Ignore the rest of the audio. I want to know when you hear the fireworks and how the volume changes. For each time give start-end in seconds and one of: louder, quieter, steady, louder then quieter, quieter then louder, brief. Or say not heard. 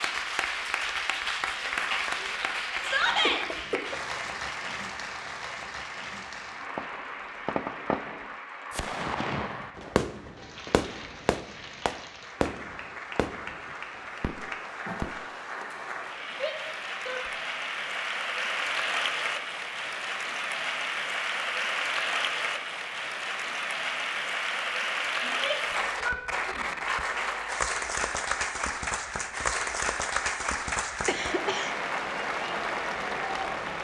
6.8-15.2 quieter.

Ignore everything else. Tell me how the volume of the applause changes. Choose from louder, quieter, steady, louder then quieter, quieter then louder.
quieter then louder.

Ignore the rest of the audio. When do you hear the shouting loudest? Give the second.
3 s.